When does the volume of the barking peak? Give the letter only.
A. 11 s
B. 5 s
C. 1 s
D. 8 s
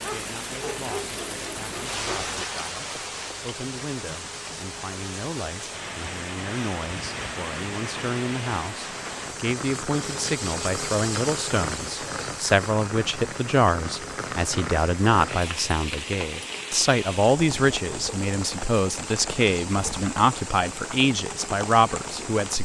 C.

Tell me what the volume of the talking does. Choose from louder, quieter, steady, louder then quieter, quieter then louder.
louder.